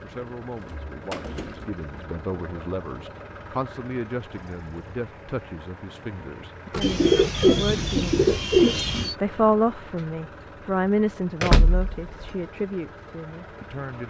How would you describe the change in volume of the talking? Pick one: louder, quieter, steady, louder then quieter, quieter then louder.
louder then quieter.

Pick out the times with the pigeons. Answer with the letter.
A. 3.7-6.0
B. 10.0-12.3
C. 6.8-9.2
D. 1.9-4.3
C.